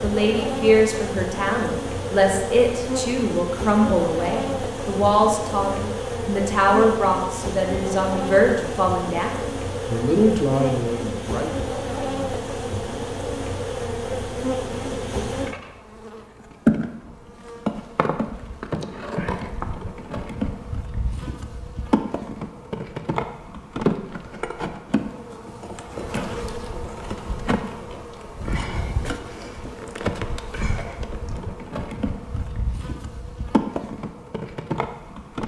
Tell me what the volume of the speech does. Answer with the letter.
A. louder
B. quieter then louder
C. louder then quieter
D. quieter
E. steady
E.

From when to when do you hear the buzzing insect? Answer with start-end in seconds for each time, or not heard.
0.0-35.4.